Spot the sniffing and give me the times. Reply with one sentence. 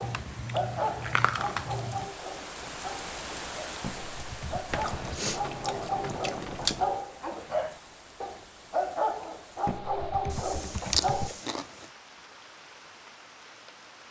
The sniffing can't be heard in this clip.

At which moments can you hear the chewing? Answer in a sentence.
The chewing can be heard from 0.0 to 2.1 s, from 4.7 to 7.0 s and from 10.3 to 11.8 s.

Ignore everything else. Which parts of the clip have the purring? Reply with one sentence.
You can't hear the purring here.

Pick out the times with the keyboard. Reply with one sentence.
You can hear the keyboard from 3.8 to 5.3 s and from 9.7 to 11.4 s.